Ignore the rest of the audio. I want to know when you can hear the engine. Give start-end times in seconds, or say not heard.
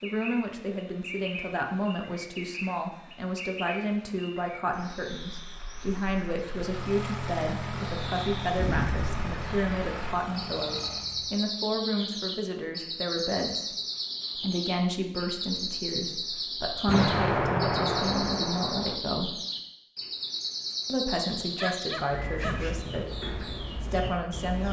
6.5-11.4.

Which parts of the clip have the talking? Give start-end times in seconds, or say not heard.
0.0-13.7, 14.3-19.4, 20.9-24.6.